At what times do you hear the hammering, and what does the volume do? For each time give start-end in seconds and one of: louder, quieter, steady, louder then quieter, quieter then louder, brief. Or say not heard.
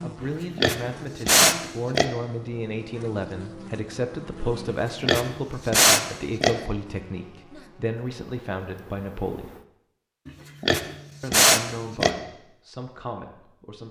not heard.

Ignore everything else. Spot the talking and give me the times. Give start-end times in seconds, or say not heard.
0.0-9.6, 11.2-13.8.